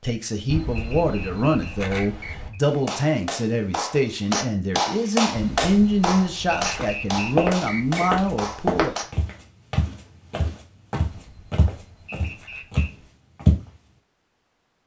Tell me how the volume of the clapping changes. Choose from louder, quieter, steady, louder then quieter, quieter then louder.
louder then quieter.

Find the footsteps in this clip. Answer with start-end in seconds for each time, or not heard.
6.7-13.7.